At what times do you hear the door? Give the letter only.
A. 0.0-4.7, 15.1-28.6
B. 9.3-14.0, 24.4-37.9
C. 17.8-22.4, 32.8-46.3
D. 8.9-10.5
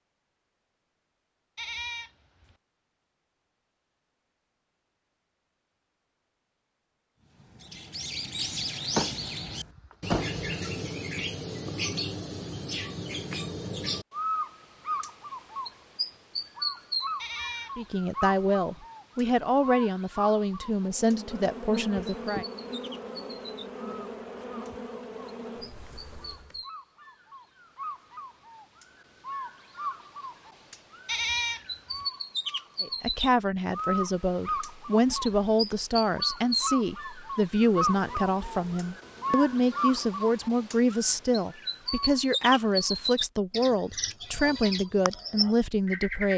D.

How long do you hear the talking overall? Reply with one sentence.
The talking can be heard for 18 seconds in total.